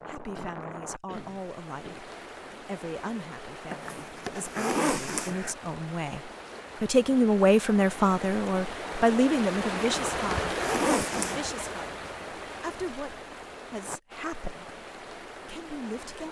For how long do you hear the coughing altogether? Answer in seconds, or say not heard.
2 s.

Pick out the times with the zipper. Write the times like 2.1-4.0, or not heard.
3.7-5.5, 9.8-11.5.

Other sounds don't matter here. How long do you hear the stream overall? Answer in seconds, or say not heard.
16 s.